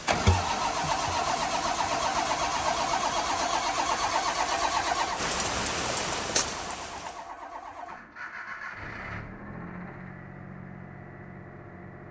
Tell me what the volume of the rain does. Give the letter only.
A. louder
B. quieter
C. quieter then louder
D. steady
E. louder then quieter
A.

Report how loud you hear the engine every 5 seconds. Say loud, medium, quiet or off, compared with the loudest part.
loud, medium, quiet.